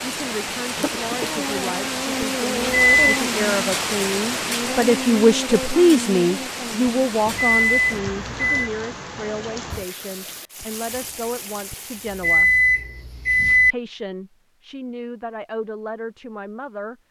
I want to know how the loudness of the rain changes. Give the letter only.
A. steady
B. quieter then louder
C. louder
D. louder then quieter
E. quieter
E.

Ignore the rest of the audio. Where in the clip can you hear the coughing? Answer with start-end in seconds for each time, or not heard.
0.8-1.4.